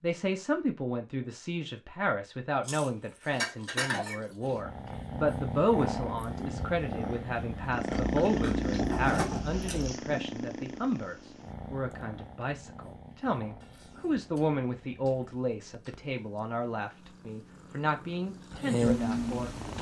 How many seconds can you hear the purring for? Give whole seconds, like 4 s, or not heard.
15 s.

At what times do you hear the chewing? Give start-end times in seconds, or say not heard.
2.6-4.6, 7.8-9.9, 13.6-16.1.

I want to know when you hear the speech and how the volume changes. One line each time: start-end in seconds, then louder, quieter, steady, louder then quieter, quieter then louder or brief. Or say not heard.
0.0-19.6 steady.